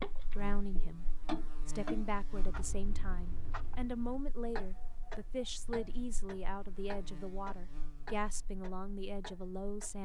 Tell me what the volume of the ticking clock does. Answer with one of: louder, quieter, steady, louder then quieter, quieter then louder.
quieter.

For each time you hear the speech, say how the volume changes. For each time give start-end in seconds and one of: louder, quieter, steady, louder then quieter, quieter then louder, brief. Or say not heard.
0.1-10.0 steady.